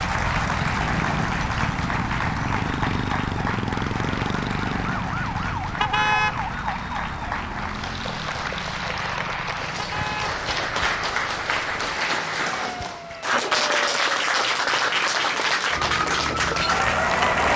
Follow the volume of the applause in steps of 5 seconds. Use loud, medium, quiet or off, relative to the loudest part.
medium, medium, loud, loud.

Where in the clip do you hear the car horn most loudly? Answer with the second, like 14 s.
6 s.